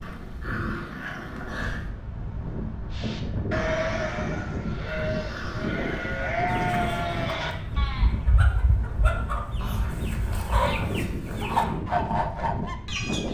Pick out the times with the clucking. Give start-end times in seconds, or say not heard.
6.5-13.3.